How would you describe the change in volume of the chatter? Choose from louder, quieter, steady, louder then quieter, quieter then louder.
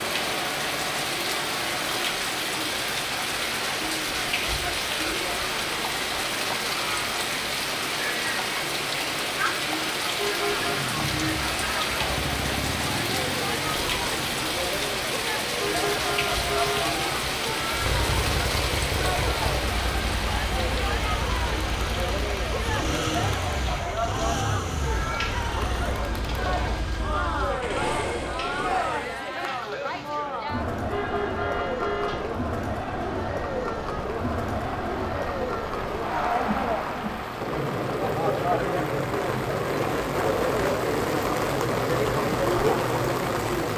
louder.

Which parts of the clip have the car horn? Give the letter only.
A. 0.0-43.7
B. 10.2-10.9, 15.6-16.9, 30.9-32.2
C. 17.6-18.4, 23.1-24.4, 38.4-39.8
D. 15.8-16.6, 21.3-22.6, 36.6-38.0
B.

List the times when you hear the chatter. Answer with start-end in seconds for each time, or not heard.
0.0-43.7.